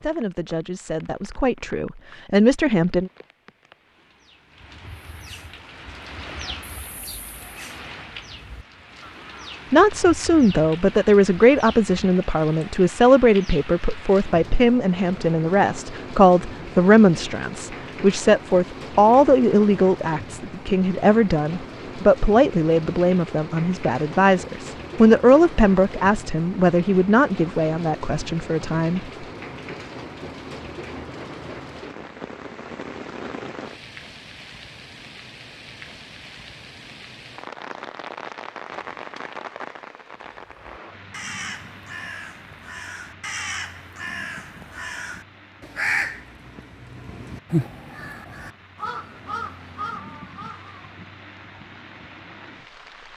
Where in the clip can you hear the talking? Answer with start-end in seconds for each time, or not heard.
0.0-3.1, 9.7-29.0.